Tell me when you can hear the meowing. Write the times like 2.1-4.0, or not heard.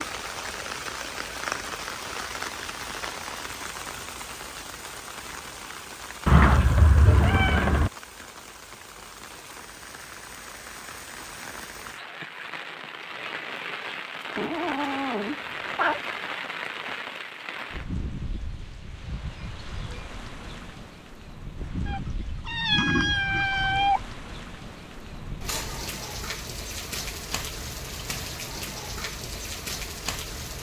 6.2-7.9, 14.3-16.0, 21.9-24.0.